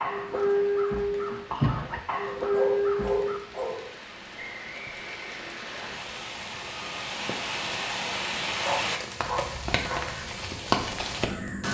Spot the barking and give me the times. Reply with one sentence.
You can hear the barking from 2.4 to 3.9 s and from 8.6 to 10.1 s.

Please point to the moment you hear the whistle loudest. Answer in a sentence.
The volume of the whistle peaks at 5 seconds.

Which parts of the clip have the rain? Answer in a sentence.
The rain can be heard from 0.0 to 11.6 s.